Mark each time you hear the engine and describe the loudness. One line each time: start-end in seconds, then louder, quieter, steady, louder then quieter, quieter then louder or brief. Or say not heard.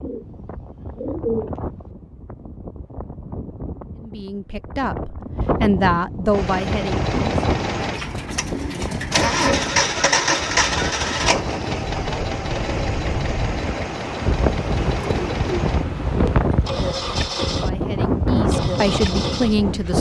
6.3-19.9 louder then quieter.